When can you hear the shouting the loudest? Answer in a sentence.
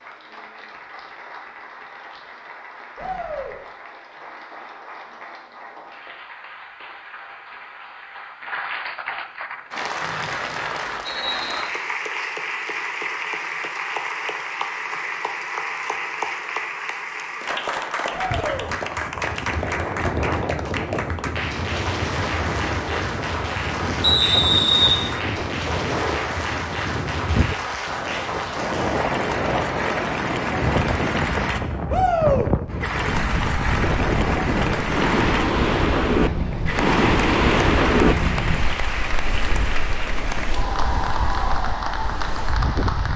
The volume of the shouting peaks at 32 seconds.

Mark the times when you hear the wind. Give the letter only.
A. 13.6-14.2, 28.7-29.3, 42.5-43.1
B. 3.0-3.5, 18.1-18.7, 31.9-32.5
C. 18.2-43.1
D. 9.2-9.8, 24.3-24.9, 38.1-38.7
C.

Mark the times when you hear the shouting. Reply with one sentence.
You can hear the shouting from 3.0 to 3.5 s, from 18.1 to 18.7 s and from 31.9 to 32.5 s.